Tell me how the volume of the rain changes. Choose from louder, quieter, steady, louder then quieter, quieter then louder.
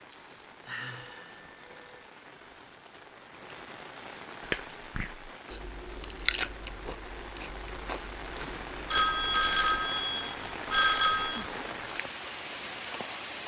louder.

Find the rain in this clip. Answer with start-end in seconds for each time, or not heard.
0.0-13.4.